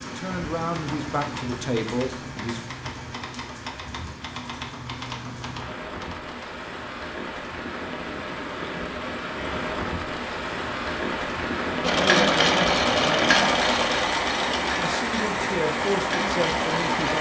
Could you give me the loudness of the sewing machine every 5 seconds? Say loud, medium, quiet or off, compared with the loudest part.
off, off, loud, medium.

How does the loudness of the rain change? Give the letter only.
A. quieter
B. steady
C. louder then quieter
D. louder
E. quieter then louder
D.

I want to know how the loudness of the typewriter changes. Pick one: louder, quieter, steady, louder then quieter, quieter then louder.
steady.